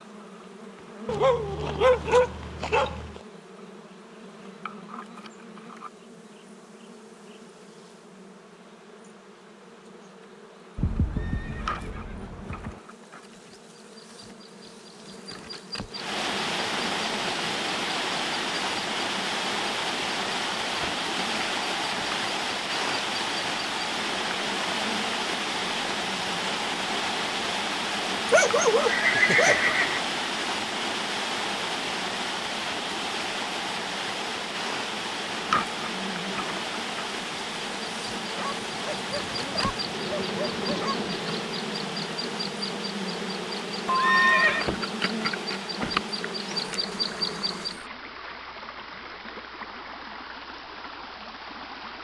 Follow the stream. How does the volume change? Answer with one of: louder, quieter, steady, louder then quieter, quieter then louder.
quieter.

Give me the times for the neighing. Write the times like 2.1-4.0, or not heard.
10.8-12.8, 28.8-30.0, 43.9-44.6.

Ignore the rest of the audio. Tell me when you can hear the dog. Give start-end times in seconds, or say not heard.
1.1-3.2, 28.2-29.9, 38.4-41.0.